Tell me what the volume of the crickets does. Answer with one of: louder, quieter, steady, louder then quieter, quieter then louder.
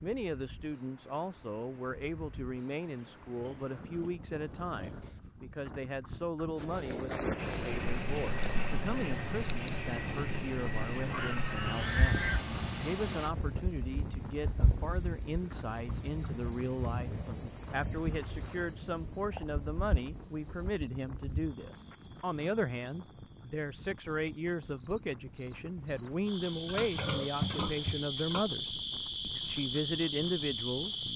quieter then louder.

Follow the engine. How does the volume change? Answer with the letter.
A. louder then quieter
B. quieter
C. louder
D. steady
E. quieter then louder
D.